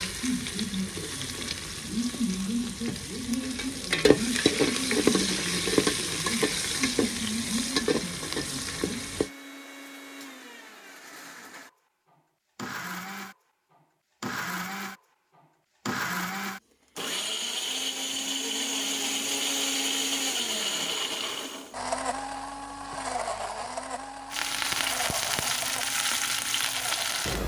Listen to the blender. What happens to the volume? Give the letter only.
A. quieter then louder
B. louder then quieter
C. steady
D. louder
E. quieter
B.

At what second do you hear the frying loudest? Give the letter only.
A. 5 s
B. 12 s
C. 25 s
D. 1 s
A.